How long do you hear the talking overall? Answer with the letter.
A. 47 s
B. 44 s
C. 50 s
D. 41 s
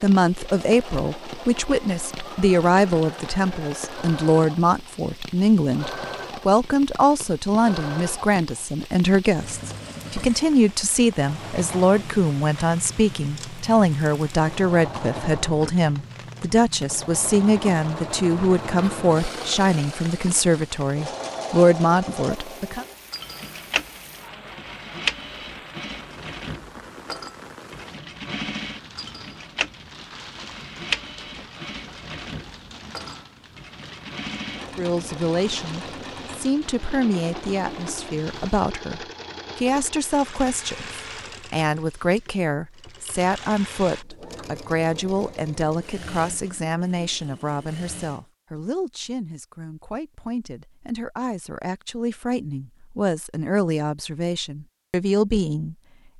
B.